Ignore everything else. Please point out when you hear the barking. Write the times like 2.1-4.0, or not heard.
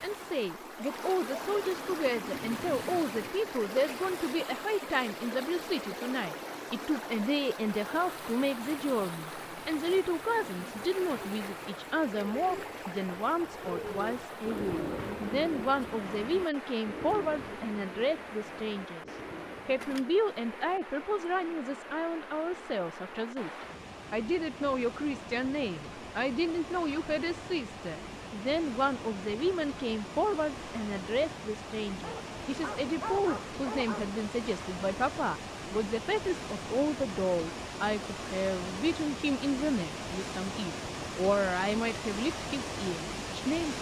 32.0-34.1.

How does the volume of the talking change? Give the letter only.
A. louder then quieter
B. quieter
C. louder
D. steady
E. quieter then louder
D.